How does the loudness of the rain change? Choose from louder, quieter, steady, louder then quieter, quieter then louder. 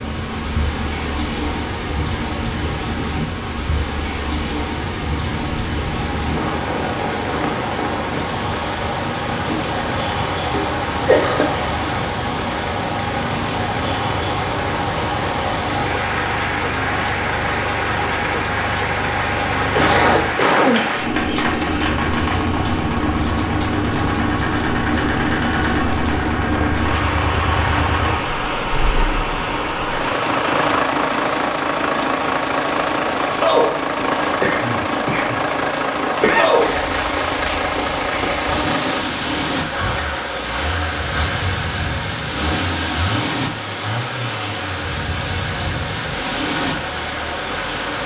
steady.